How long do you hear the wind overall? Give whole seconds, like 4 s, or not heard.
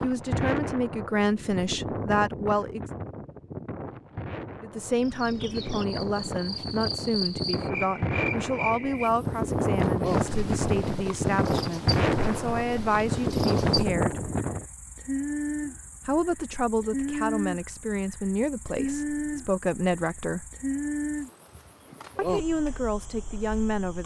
15 s.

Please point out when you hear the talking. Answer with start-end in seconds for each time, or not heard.
0.0-2.9, 4.6-14.2, 16.1-20.4, 22.1-24.0.